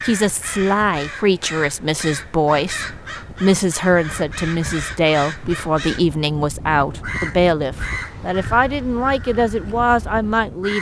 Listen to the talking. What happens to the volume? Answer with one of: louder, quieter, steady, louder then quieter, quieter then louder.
steady.